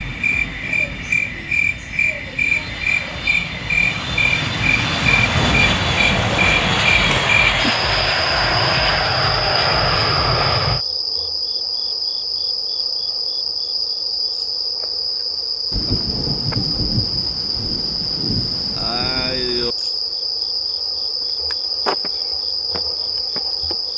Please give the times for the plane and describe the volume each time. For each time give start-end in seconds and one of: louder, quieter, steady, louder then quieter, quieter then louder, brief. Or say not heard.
0.0-10.8 louder.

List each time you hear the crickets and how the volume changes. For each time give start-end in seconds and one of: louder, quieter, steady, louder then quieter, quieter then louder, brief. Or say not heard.
0.0-23.9 steady.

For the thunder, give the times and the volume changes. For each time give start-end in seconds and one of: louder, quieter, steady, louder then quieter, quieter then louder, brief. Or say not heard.
5.3-7.2 brief
15.7-19.8 quieter then louder.